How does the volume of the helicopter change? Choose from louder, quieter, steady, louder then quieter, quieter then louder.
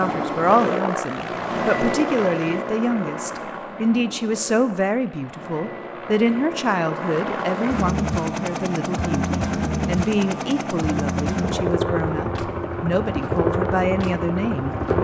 quieter then louder.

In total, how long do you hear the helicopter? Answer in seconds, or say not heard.
15 s.